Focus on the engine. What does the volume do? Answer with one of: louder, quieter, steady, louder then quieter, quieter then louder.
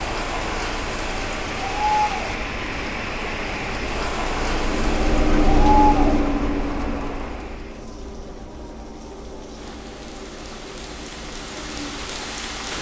louder then quieter.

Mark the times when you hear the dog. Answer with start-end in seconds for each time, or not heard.
not heard.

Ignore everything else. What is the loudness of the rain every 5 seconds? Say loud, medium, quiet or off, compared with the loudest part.
loud, medium, medium.